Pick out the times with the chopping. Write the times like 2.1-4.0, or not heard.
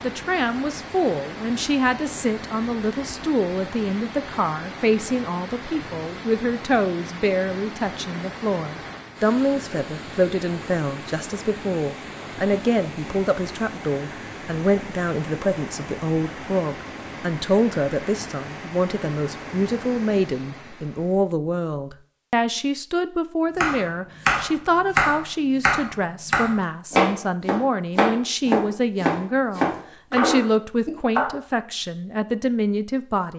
23.6-31.3.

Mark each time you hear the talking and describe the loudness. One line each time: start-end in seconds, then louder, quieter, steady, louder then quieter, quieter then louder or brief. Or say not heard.
0.0-33.3 steady.